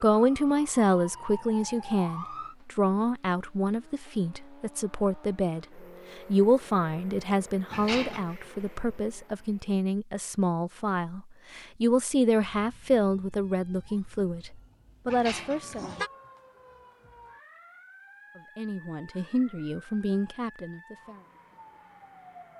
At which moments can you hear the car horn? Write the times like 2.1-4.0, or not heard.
7.7-8.3, 15.1-16.1.